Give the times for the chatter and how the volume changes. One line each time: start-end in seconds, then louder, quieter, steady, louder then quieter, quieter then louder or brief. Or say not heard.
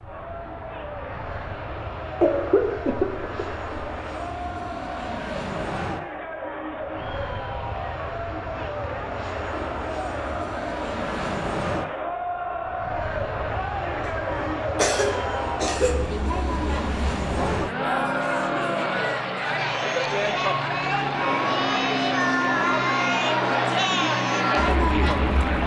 0.0-25.6 louder.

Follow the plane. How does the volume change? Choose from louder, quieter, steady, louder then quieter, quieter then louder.
louder.